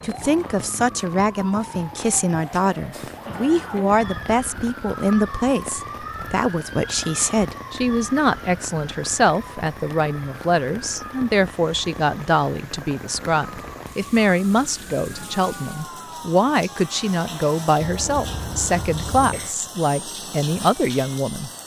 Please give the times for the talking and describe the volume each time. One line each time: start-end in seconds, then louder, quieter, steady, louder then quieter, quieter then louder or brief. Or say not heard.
0.0-21.5 steady.